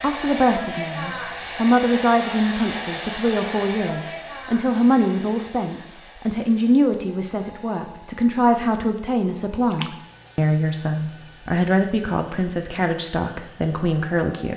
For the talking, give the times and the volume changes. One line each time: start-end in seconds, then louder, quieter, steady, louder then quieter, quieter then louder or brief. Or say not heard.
0.0-14.5 steady.